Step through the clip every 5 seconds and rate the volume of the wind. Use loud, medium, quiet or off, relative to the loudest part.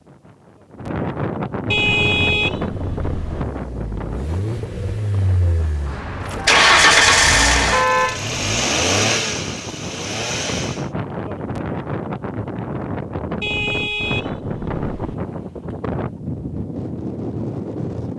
loud, medium, loud, loud.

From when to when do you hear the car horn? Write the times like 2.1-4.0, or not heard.
1.7-3.5, 7.7-8.3, 13.4-15.2.